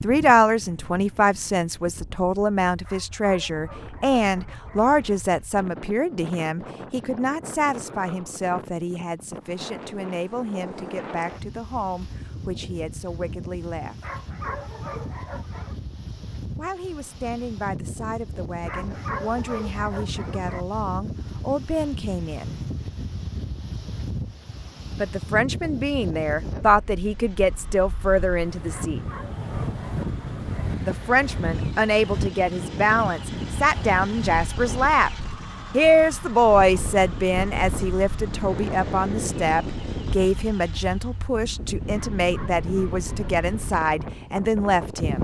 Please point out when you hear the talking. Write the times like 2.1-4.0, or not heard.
0.0-13.9, 16.6-22.6, 24.9-29.0, 30.9-35.1, 35.7-45.1.